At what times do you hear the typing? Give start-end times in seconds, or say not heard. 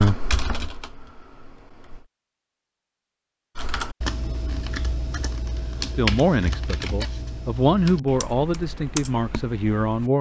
0.0-2.0, 3.5-10.1.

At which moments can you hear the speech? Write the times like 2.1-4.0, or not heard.
5.8-10.1.